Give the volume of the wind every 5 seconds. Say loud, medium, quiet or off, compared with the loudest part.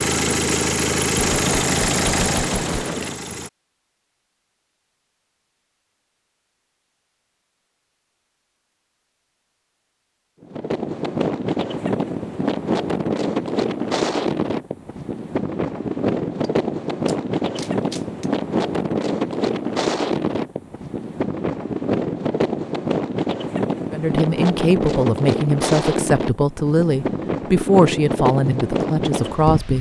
off, off, loud, loud, loud, loud.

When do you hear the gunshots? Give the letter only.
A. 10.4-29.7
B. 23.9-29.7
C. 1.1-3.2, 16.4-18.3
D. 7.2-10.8
C.